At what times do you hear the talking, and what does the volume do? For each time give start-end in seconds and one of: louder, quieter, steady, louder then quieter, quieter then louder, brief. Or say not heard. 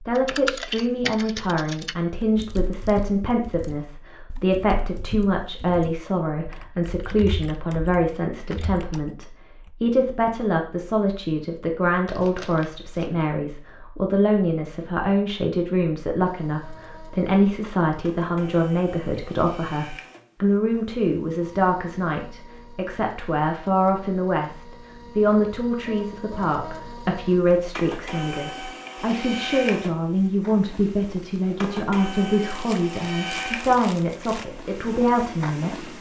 0.0-35.9 steady.